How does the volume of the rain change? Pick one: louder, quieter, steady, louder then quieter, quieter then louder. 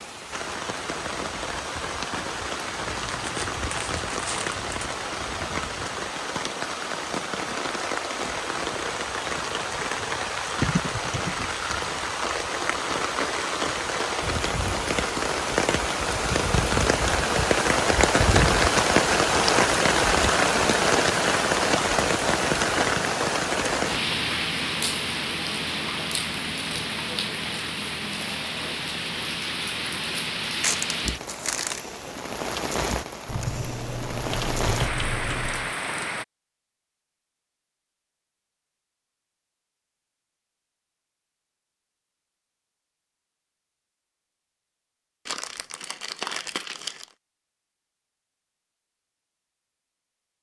louder then quieter.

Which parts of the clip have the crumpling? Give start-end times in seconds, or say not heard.
3.0-5.0, 30.6-31.8, 45.2-47.1.